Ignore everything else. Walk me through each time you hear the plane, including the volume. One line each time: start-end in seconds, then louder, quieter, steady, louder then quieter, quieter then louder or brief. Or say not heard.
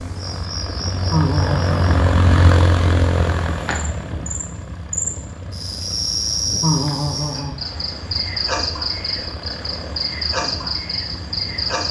0.0-11.8 quieter.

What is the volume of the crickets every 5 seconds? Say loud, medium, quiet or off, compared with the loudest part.
medium, loud, loud.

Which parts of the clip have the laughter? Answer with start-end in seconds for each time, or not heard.
1.1-2.0, 6.6-7.5.